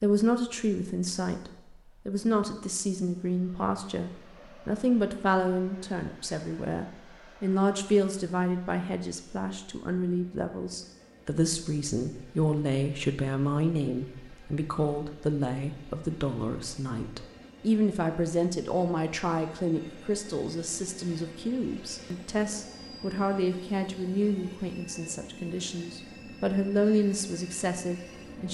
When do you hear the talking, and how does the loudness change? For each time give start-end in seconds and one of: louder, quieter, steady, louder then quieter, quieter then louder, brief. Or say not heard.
0.0-28.5 steady.